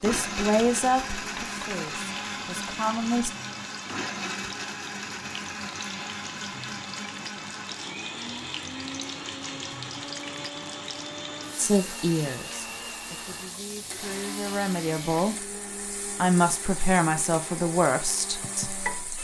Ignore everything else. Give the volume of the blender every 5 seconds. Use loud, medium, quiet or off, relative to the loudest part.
loud, loud, medium, medium.